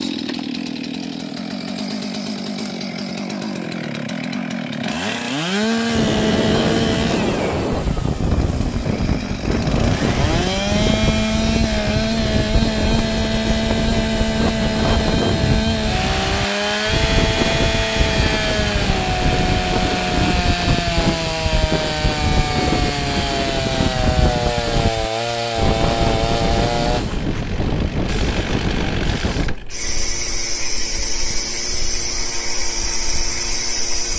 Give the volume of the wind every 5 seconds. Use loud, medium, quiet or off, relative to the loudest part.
off, loud, loud, loud, loud, loud, quiet.